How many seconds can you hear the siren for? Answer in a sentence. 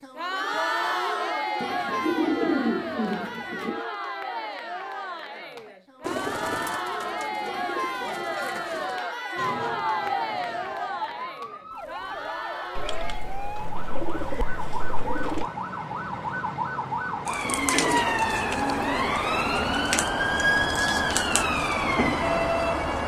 The siren can be heard for 14 seconds in total.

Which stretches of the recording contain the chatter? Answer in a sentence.
You can hear the chatter from 0.0 to 13.4 s.